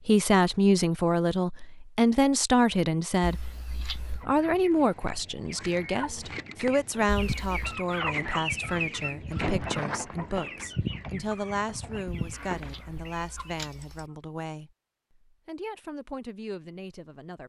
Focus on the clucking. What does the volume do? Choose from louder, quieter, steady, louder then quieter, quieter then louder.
louder then quieter.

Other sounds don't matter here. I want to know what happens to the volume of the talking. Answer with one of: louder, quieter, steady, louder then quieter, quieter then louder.
quieter.